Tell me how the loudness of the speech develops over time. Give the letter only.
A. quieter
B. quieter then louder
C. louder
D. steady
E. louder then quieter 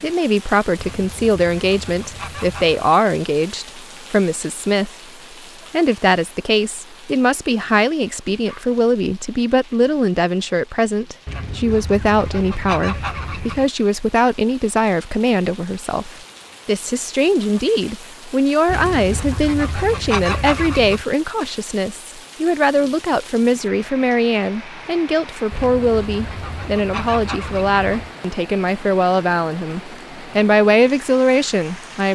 D.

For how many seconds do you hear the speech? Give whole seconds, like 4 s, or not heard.
31 s.